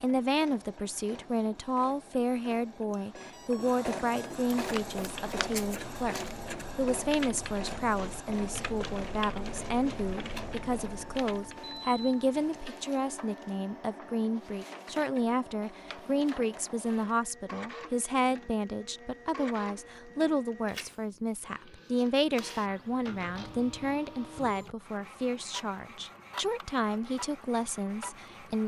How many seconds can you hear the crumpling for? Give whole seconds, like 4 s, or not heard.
2 s.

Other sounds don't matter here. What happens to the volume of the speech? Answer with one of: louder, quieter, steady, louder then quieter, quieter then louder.
steady.